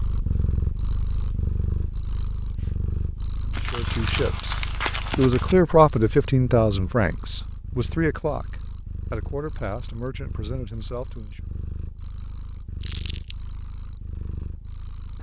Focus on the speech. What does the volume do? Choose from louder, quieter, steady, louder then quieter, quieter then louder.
louder then quieter.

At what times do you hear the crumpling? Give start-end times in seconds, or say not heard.
3.5-5.5, 12.8-13.3.